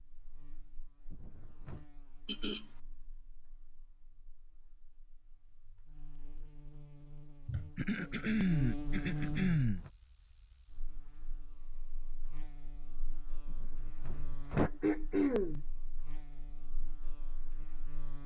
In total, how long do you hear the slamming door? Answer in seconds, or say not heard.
3 s.